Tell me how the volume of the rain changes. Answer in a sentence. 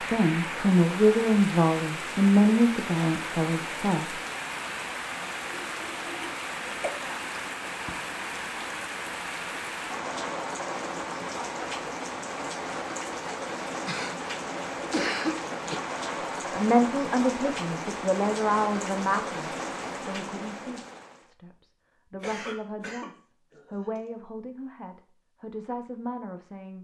The volume of the rain stays about the same.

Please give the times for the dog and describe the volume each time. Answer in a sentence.
You can't hear the dog here.